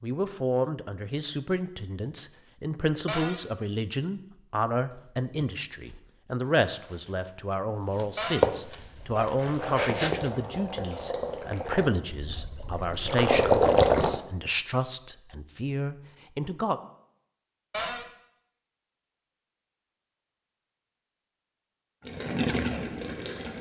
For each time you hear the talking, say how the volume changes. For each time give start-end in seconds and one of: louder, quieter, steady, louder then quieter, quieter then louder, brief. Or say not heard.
0.0-16.8 steady.